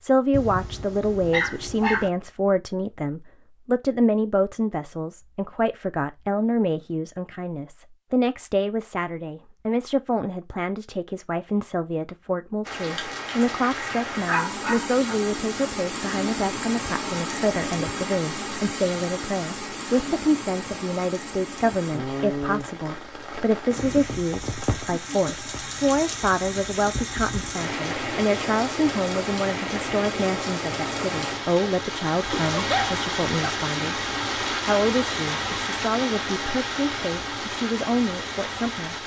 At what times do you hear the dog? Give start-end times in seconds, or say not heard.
0.3-2.1, 14.2-15.2, 31.6-33.6.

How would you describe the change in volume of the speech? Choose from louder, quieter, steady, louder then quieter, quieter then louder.
steady.